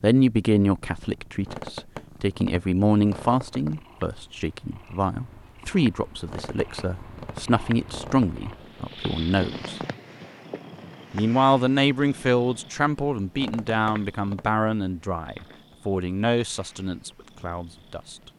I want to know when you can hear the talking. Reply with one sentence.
You can hear the talking from 0.0 to 9.8 s and from 11.1 to 18.1 s.